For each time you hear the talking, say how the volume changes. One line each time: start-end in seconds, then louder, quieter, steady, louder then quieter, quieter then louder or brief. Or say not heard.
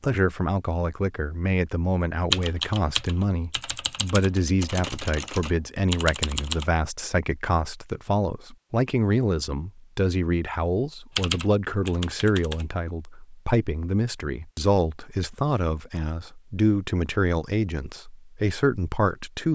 0.0-19.5 steady.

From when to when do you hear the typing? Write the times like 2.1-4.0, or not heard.
2.3-6.7, 11.2-12.7.